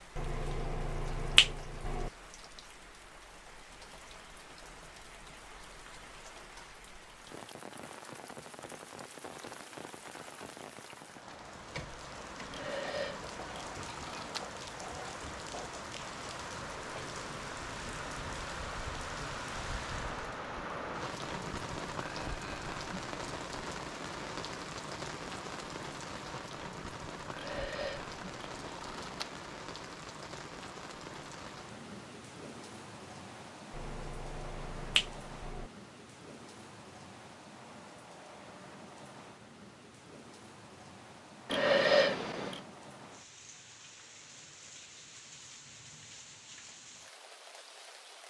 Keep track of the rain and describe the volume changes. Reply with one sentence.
The volume of the rain goes up, then down.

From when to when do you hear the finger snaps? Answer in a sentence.
You can hear the finger snaps from 0.1 to 2.1 s and from 33.7 to 35.7 s.